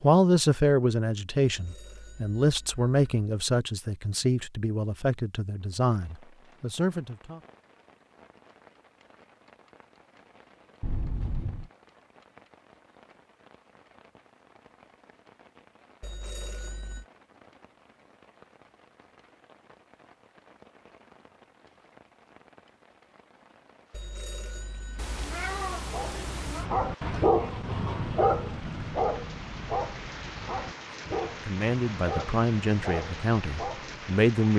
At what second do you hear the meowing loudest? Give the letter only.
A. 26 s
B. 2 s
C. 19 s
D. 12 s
A.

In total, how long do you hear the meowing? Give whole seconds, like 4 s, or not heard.
3 s.